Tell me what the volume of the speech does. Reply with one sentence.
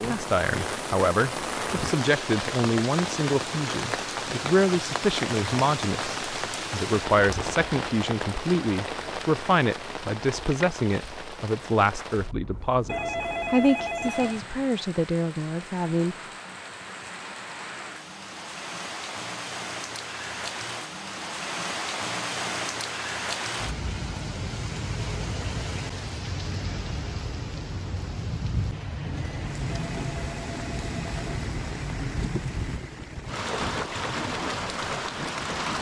The loudness of the speech stays about the same.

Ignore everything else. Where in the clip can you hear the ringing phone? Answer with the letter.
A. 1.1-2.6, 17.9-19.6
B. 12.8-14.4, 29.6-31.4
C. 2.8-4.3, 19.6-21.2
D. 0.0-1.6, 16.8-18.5
B.